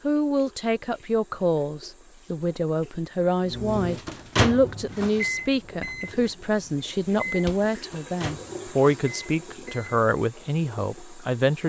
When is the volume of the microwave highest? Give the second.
5 s.